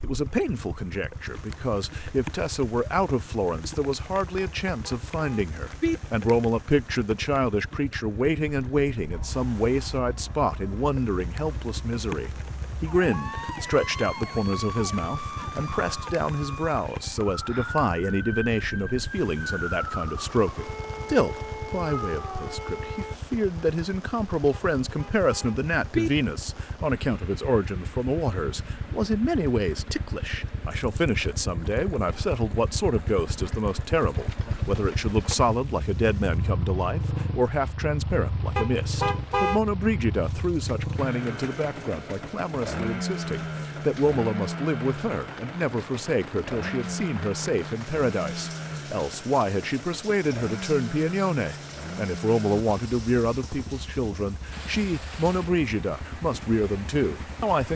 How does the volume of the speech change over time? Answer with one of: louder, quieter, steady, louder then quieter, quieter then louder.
steady.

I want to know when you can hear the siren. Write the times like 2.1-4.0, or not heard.
9.1-23.1.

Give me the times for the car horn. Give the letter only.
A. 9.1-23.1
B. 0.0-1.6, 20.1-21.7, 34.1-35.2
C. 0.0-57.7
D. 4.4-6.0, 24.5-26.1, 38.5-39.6
D.